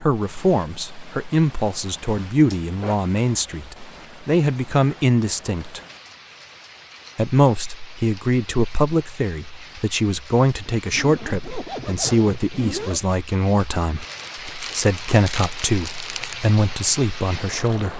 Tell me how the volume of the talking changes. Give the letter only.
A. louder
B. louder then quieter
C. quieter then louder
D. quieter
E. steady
E.